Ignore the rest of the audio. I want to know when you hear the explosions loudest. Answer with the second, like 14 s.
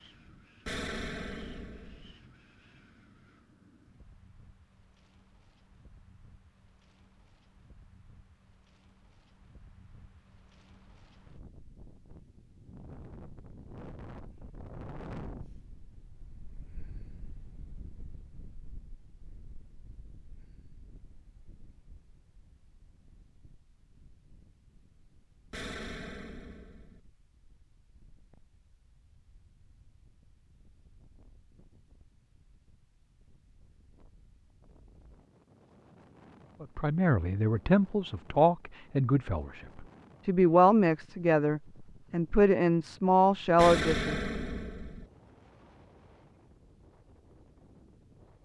44 s.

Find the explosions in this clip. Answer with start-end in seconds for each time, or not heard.
0.7-2.1, 25.5-27.0, 43.5-45.0.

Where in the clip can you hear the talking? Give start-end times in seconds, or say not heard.
36.6-44.2.